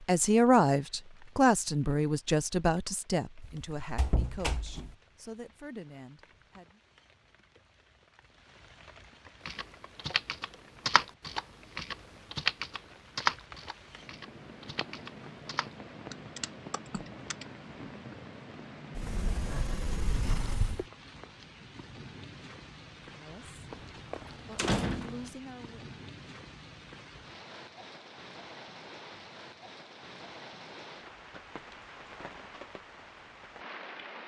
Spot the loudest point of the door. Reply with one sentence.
The volume of the door peaks at 25 seconds.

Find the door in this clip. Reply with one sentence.
The door can be heard from 3.4 to 5.0 s, from 18.9 to 20.9 s and from 23.7 to 25.3 s.